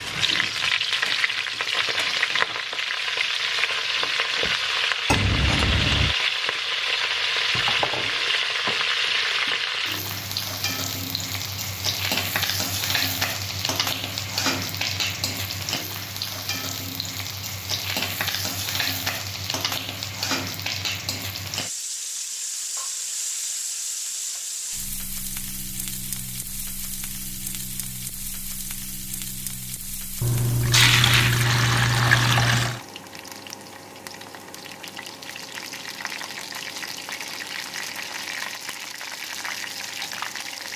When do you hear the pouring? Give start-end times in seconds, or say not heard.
5.0-6.2, 30.2-32.8.